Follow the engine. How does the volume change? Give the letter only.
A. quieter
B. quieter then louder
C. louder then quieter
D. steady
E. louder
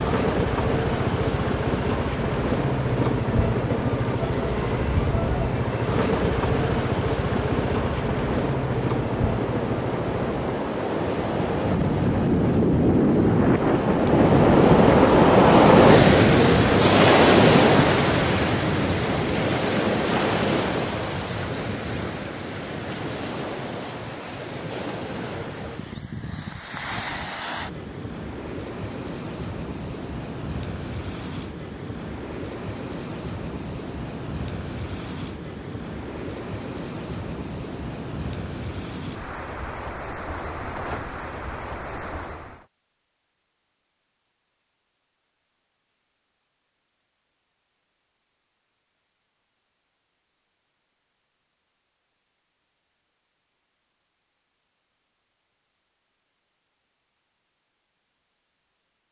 D.